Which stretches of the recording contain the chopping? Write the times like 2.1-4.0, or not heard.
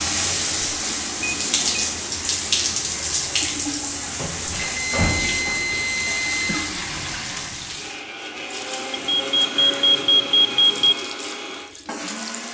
not heard.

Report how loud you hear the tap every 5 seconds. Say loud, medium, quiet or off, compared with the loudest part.
loud, medium, quiet.